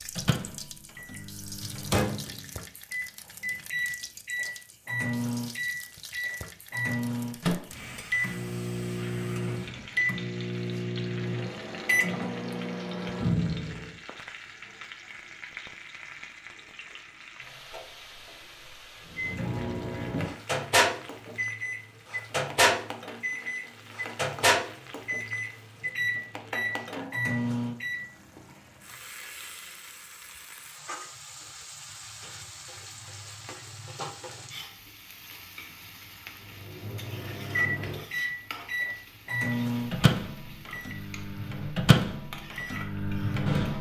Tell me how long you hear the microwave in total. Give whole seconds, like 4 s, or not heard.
30 s.